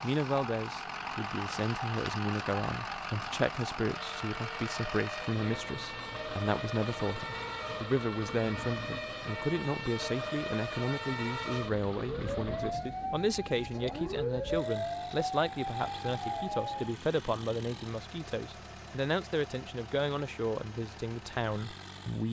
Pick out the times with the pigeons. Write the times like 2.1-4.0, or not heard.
not heard.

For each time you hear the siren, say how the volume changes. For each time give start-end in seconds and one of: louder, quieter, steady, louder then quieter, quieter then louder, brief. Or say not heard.
0.0-16.9 louder.